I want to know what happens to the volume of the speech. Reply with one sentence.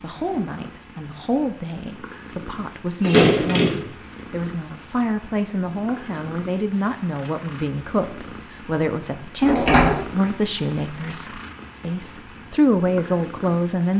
The volume of the speech goes up.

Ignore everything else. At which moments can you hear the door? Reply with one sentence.
You can hear the door from 3.0 to 3.9 s and from 9.4 to 10.0 s.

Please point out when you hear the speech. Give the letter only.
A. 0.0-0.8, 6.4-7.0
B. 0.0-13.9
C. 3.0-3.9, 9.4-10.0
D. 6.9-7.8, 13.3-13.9
B.